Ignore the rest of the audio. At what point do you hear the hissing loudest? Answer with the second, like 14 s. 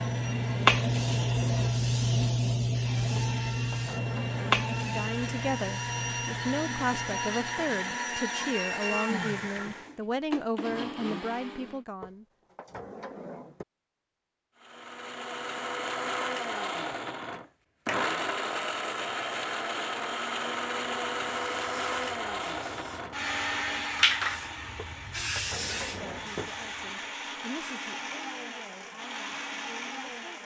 1 s.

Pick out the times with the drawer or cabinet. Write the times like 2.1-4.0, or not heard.
3.1-4.6, 12.0-13.7, 24.8-26.6.